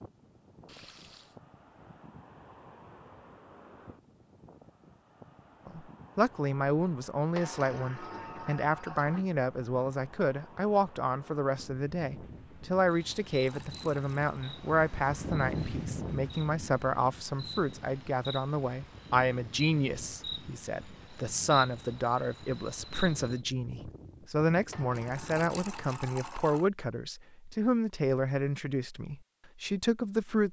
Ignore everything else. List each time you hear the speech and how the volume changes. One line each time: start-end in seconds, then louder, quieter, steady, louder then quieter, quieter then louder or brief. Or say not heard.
5.7-30.4 steady.